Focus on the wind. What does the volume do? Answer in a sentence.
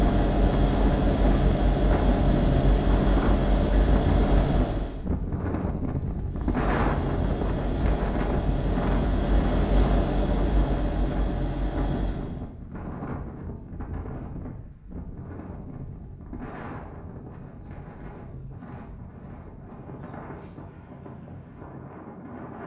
The volume of the wind goes down.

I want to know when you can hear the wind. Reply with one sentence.
You can hear the wind from 0.0 to 22.6 s.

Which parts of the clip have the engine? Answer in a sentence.
The engine can be heard from 0.0 to 5.0 s and from 6.3 to 12.5 s.